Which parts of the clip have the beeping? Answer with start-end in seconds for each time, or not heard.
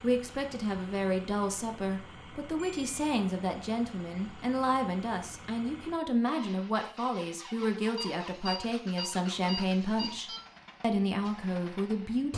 2.5-3.0, 8.0-10.4.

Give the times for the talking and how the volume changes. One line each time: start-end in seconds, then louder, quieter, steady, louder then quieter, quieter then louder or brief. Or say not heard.
0.0-12.3 steady.